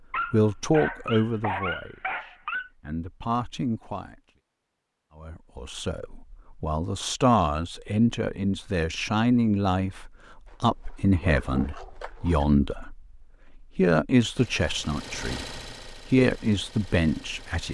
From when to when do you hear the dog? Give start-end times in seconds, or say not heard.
0.1-2.7, 10.4-12.4.